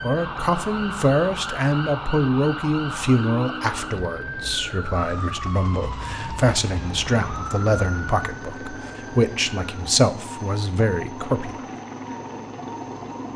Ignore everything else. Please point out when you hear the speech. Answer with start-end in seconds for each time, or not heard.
0.0-11.6.